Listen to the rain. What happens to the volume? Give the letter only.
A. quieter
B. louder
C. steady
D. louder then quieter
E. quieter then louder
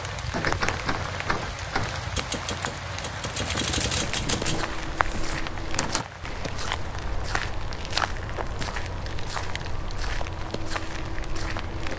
A.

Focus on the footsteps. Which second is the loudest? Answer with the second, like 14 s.
8 s.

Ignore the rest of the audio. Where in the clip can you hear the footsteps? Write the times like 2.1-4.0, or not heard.
4.2-11.9.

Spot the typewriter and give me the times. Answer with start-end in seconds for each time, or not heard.
0.3-6.0.